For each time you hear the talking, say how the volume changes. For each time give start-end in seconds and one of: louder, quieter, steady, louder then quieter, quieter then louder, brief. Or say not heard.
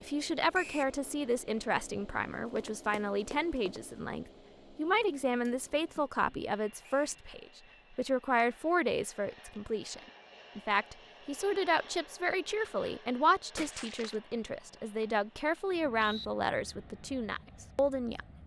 0.0-18.4 steady.